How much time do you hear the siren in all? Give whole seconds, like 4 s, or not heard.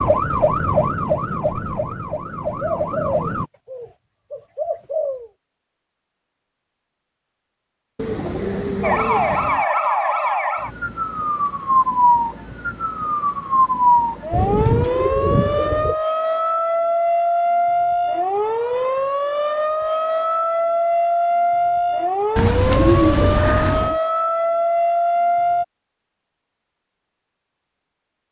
20 s.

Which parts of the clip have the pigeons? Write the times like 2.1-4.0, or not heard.
2.6-5.3, 8.0-9.7, 14.3-15.9, 22.4-24.0.